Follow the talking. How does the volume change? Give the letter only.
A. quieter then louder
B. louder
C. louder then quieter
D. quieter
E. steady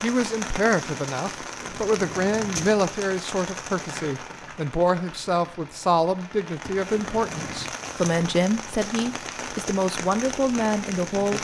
E.